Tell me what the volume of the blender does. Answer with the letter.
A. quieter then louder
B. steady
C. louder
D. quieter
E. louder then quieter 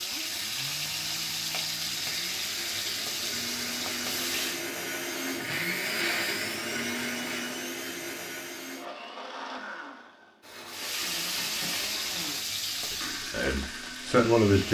E.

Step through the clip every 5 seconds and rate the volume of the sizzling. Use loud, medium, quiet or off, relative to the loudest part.
loud, off, loud.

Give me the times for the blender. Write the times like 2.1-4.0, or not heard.
0.1-14.6.